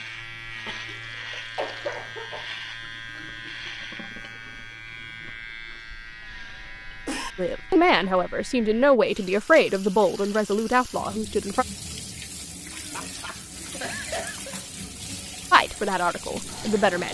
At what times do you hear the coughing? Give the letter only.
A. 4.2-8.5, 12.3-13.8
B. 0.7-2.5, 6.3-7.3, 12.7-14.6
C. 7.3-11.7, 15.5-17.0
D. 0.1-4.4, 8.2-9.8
B.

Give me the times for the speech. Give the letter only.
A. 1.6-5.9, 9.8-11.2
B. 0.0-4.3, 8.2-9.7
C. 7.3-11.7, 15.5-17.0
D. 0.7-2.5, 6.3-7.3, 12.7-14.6
C.